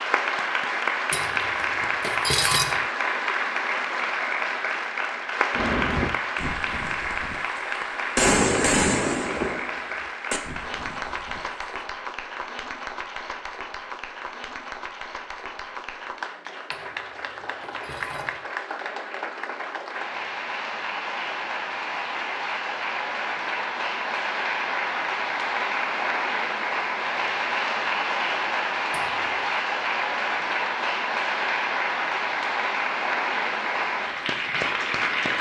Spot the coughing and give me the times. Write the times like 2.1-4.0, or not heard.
not heard.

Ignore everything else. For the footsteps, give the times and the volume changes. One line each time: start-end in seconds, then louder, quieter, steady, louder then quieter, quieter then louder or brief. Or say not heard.
not heard.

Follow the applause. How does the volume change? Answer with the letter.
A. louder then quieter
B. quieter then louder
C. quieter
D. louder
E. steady
B.